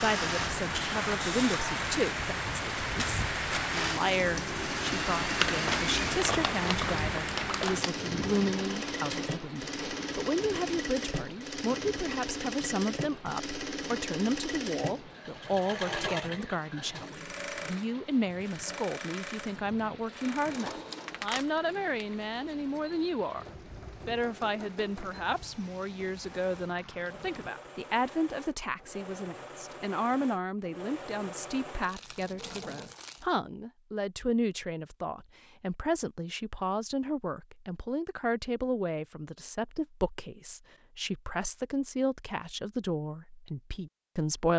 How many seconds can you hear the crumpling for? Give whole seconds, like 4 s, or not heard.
6 s.